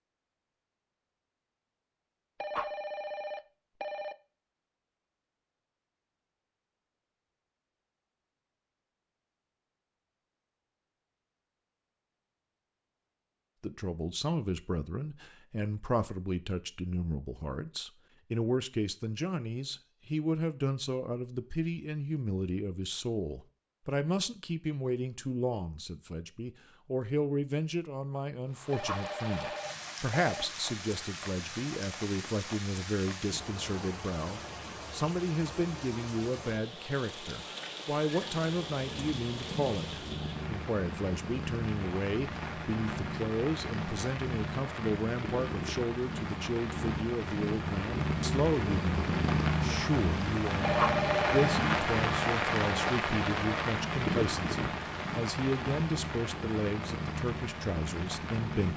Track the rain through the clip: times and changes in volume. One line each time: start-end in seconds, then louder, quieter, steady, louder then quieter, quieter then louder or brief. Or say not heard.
28.5-58.7 louder.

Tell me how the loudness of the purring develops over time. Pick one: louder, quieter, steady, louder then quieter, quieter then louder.
louder then quieter.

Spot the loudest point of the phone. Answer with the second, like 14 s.
51 s.